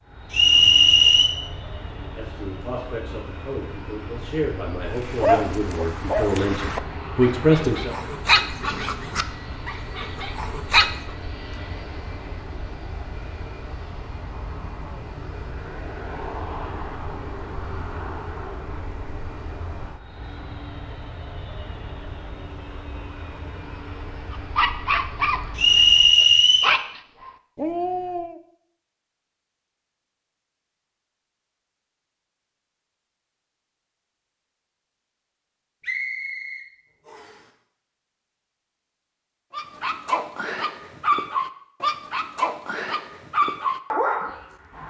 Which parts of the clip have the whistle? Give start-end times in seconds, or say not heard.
0.3-1.3, 25.6-26.7, 35.8-37.4.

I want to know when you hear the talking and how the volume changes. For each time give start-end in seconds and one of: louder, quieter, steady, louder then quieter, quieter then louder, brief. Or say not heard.
1.9-8.0 louder.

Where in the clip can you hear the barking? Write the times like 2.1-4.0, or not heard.
5.0-11.2, 24.3-28.4, 39.5-44.8.